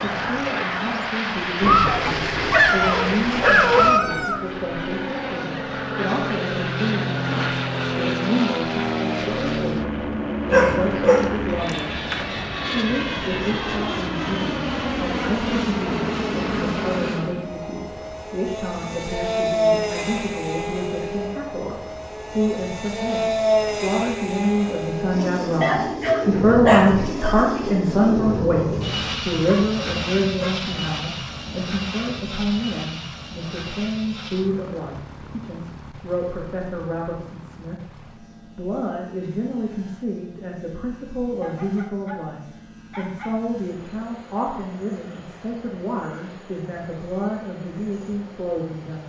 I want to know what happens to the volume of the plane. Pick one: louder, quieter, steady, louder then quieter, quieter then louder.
quieter.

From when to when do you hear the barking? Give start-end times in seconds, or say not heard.
1.6-4.4, 10.5-12.2, 25.6-27.4, 29.4-30.6, 41.4-43.4.